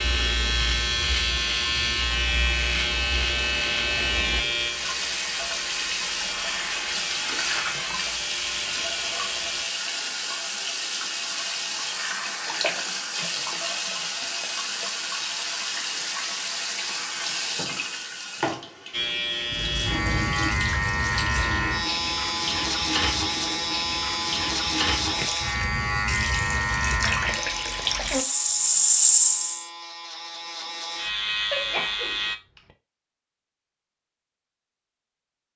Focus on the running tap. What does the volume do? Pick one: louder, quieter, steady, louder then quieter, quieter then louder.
louder.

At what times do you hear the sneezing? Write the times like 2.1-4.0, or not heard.
31.5-32.6.